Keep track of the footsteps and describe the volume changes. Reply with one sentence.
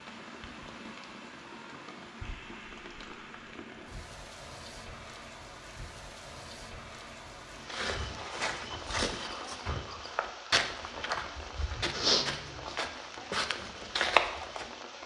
The volume of the footsteps goes up.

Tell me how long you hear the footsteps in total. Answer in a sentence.
The footsteps can be heard for 7 seconds in total.